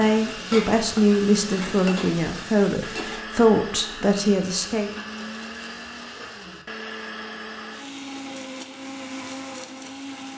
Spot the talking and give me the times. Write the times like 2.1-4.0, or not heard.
0.0-4.9.